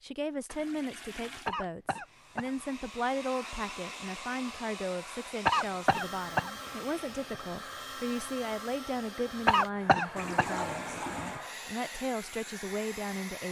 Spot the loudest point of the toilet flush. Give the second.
11 s.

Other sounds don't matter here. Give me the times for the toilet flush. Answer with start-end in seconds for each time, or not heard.
0.5-1.6, 10.2-11.4.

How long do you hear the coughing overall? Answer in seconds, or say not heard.
5 s.